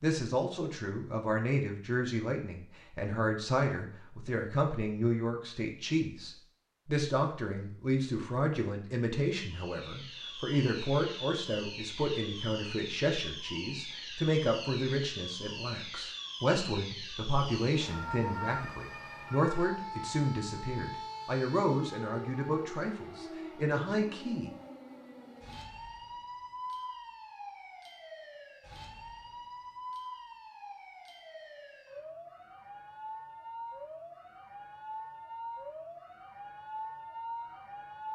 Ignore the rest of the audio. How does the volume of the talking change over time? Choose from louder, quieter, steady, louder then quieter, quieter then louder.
steady.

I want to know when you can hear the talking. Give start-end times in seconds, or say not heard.
0.0-24.5.